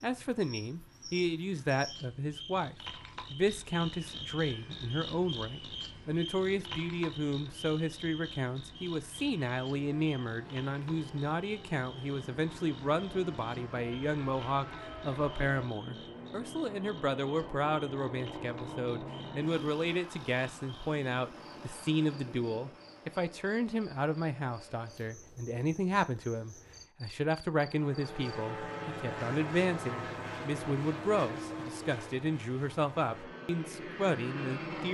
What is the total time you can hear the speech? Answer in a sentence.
You can hear the speech for 35 seconds altogether.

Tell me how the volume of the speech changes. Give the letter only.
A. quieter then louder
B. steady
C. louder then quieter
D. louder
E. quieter
B.